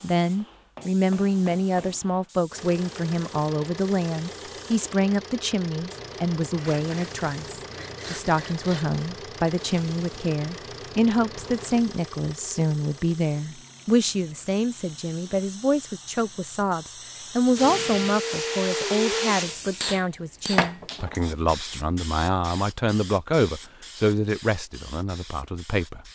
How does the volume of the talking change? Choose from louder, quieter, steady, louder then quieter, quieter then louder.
steady.